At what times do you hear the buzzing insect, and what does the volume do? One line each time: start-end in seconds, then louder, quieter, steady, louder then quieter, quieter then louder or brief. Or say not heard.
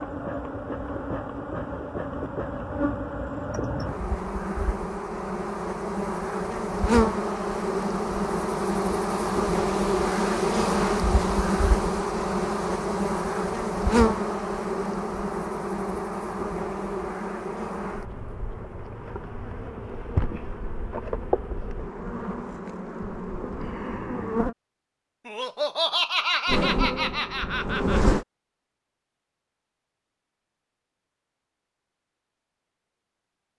0.0-24.6 louder then quieter
26.4-28.2 brief.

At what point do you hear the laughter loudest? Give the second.
26 s.